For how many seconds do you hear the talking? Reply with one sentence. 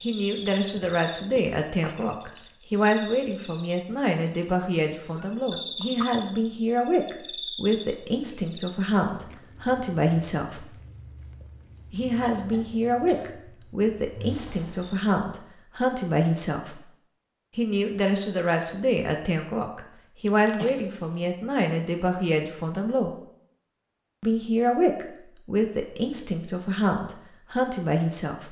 You can hear the talking for 25 seconds altogether.